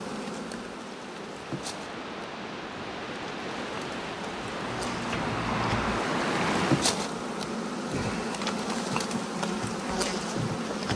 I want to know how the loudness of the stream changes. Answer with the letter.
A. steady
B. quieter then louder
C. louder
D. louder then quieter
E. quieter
C.